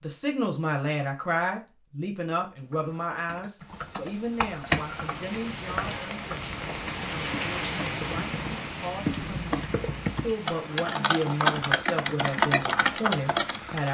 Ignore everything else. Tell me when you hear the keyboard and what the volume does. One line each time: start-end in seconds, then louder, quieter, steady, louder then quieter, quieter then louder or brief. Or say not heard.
2.7-13.8 quieter then louder.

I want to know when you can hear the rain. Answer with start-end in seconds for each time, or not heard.
4.6-13.8.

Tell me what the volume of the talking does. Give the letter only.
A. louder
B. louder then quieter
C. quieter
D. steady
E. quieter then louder
E.